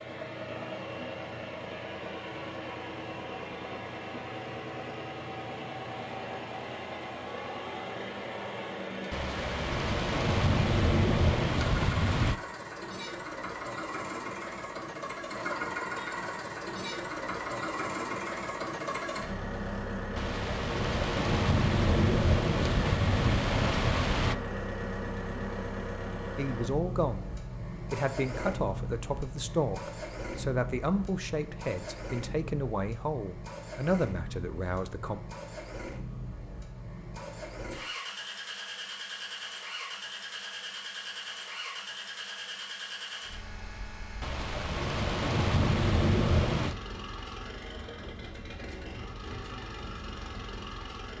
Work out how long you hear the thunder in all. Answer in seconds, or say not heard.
10 s.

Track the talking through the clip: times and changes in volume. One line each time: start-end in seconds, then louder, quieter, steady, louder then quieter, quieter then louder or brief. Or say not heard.
26.4-27.3 brief
27.9-35.2 steady.